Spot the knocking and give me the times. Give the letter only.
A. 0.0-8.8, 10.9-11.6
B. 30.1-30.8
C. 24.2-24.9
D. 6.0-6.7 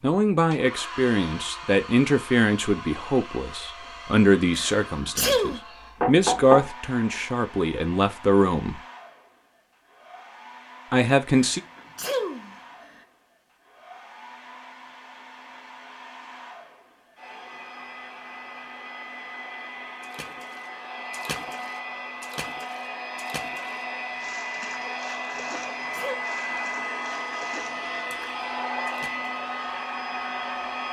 D.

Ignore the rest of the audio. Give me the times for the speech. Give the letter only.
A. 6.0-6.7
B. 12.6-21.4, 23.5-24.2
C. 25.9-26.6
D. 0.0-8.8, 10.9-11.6
D.